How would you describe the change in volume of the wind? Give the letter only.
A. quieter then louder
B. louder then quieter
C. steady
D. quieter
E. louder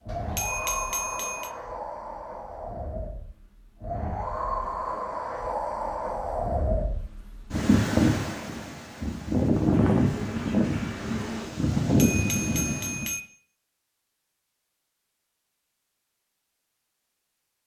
E.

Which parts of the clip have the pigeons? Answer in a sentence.
You can hear the pigeons from 9.7 to 11.5 s.